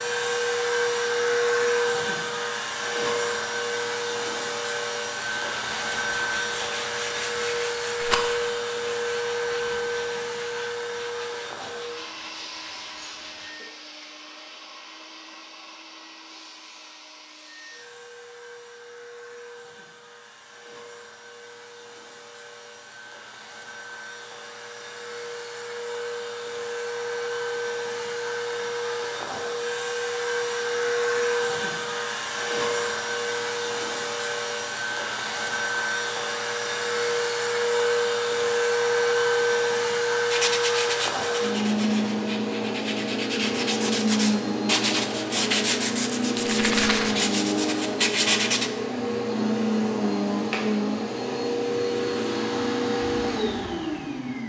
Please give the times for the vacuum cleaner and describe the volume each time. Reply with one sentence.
You can hear the vacuum cleaner from 0.0 to 54.4 s, getting quieter then louder.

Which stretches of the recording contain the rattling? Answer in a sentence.
You can hear the rattling from 8.0 to 8.4 s and from 46.4 to 47.1 s.